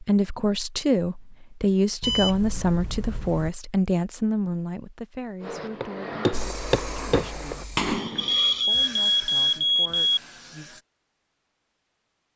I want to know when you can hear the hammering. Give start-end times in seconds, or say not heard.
5.4-8.3.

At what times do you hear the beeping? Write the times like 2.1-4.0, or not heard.
2.0-3.5, 8.2-10.2.